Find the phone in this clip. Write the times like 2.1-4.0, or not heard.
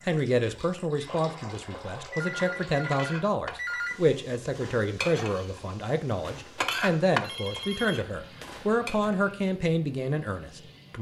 2.1-4.0, 7.2-8.7.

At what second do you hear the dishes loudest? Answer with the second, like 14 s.
7 s.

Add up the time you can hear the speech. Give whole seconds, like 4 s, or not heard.
11 s.